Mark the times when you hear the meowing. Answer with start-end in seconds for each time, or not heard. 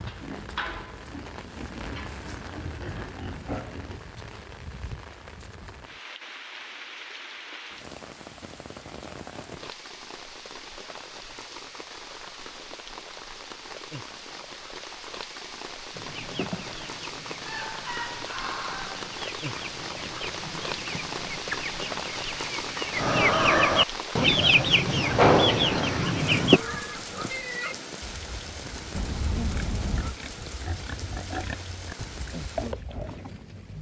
28.9-30.1.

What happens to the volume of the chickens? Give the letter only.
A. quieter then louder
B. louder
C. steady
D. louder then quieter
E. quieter
B.